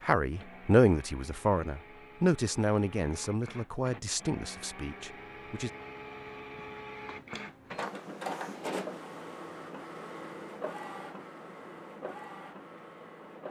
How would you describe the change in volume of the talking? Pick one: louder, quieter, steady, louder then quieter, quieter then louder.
quieter.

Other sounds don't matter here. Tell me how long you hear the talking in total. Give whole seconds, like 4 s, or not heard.
6 s.